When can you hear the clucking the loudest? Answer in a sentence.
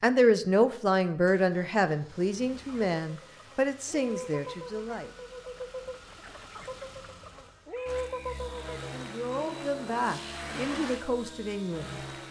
The volume of the clucking peaks at 8 seconds.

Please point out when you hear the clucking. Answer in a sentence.
The clucking can be heard from 2.5 to 8.9 s.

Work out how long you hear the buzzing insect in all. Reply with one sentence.
The buzzing insect can't be heard in this clip.